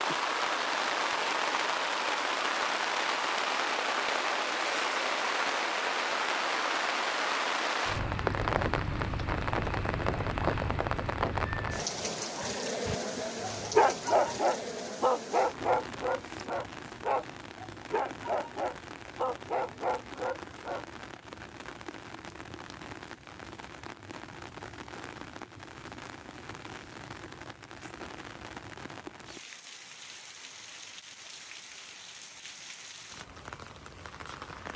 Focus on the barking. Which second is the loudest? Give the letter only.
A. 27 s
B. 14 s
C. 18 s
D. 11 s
B.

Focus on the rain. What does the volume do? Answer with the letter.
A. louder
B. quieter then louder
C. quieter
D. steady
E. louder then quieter
C.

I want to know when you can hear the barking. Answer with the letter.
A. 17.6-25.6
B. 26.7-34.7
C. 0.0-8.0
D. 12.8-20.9
D.